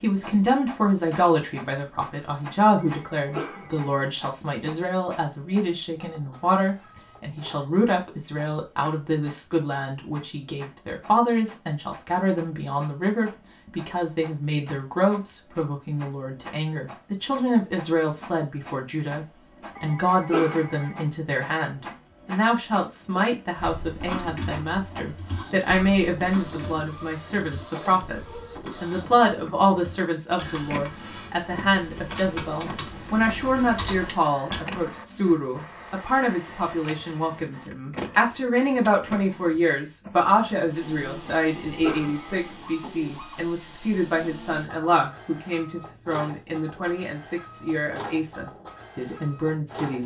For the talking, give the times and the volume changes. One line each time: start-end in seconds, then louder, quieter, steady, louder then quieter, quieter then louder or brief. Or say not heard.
0.0-50.0 steady.